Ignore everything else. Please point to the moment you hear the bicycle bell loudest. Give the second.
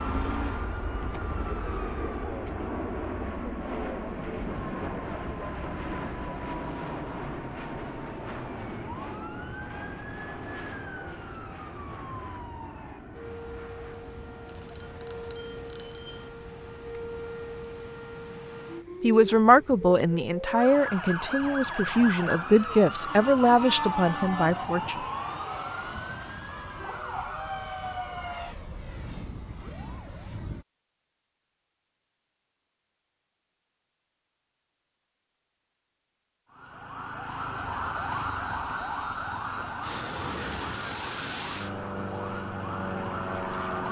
16 s.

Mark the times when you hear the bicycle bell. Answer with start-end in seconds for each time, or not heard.
14.4-16.3.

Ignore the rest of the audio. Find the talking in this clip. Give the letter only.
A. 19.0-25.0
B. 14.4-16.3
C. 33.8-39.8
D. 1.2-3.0
A.